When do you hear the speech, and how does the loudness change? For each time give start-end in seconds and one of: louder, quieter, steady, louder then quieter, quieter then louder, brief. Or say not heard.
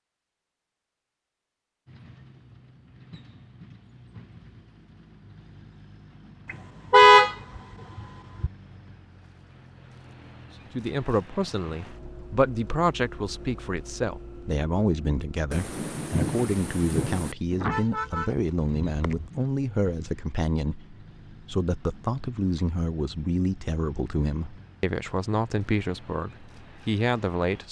10.8-27.6 steady.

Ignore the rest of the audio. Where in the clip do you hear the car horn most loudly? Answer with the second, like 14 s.
7 s.